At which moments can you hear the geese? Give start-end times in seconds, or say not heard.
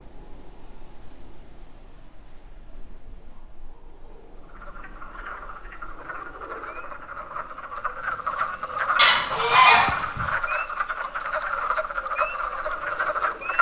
8.9-10.3.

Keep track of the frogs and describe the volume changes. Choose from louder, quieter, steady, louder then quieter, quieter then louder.
louder.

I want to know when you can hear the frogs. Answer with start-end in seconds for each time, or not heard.
4.4-13.5.